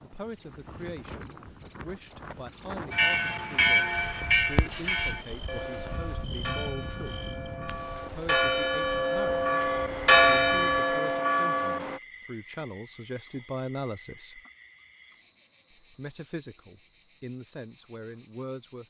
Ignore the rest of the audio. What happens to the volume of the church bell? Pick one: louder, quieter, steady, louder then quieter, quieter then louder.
quieter then louder.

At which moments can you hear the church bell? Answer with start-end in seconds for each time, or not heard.
2.9-12.0.